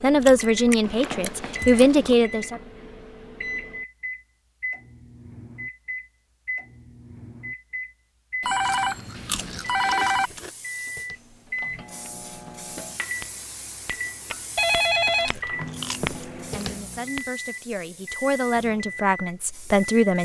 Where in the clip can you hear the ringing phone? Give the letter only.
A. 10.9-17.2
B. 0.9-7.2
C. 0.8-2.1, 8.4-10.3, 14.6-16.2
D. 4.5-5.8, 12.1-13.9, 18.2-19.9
C.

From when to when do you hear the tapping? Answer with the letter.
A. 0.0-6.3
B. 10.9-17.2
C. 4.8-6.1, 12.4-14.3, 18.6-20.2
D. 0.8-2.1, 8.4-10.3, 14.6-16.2
B.